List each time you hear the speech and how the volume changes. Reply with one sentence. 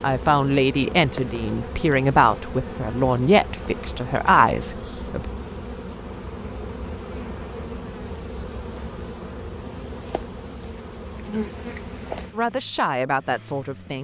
You can hear the speech from 0.0 to 5.2 s, at a steady volume; and briefly from 12.3 to 13.9 s.